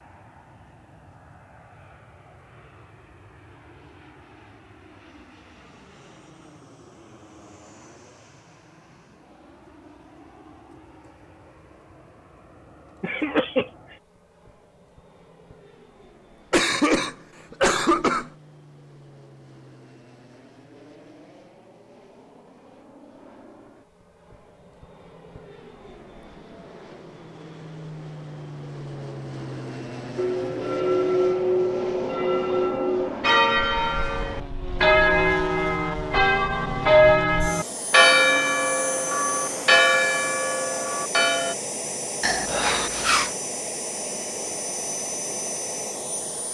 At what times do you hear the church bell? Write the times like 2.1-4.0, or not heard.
30.1-41.5.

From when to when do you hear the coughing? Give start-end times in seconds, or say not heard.
13.0-13.7, 16.5-18.3, 42.2-43.3.